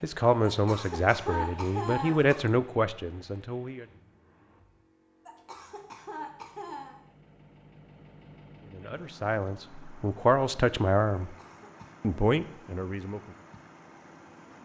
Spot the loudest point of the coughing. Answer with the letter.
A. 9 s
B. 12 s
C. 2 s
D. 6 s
C.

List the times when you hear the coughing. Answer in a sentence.
You can hear the coughing from 0.4 to 2.4 s, from 5.2 to 7.0 s and from 11.2 to 11.9 s.